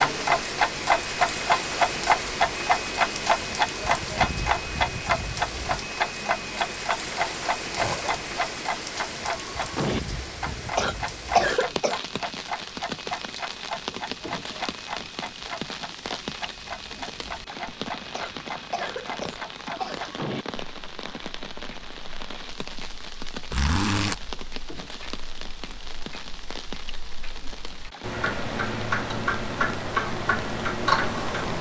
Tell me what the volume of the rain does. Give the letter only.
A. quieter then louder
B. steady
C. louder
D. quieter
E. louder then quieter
D.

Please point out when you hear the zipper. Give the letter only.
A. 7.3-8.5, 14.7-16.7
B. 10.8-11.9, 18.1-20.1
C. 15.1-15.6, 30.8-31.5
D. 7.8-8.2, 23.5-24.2
D.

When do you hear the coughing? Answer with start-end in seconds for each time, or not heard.
10.8-11.9, 18.1-20.1.